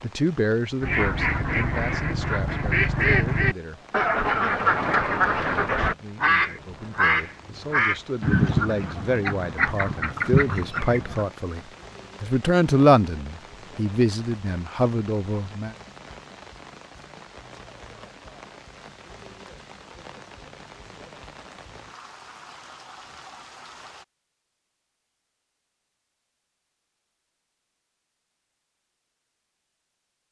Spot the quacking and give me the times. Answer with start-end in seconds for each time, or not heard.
0.8-11.2.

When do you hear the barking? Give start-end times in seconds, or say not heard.
not heard.